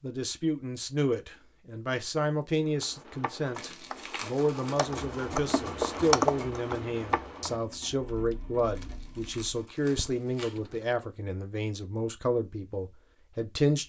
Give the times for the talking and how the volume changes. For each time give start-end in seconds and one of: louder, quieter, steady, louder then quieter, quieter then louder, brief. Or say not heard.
0.0-13.8 steady.